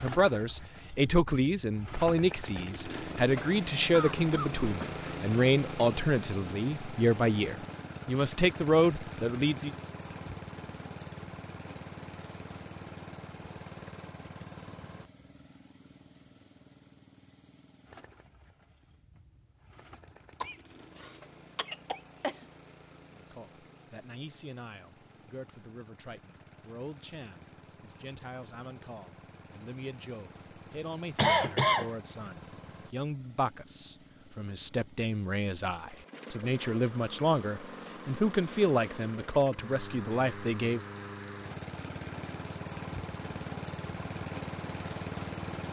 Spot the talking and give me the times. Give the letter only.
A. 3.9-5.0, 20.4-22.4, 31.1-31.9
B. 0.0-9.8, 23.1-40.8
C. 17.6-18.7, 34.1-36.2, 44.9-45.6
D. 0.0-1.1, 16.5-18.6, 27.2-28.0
B.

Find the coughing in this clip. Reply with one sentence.
The coughing can be heard from 3.9 to 5.0 s, from 20.4 to 22.4 s and from 31.1 to 31.9 s.